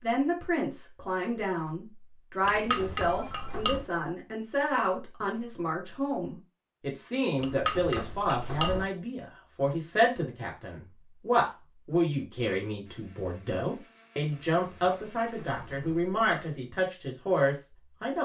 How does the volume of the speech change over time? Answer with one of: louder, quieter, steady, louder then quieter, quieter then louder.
steady.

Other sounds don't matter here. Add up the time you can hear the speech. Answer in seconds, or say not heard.
18 s.